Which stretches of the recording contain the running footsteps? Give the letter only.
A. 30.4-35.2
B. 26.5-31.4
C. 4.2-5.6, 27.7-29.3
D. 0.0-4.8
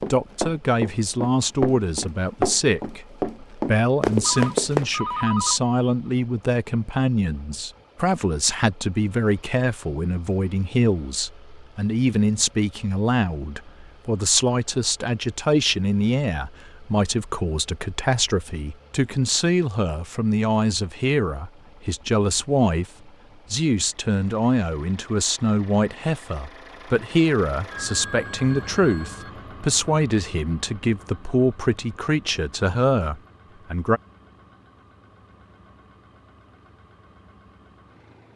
D.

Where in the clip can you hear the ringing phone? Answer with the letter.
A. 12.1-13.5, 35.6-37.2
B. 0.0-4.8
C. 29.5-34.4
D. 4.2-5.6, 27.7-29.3
D.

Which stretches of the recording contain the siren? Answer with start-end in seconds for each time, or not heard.
not heard.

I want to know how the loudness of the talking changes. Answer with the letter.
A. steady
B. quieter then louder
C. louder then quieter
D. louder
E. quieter
A.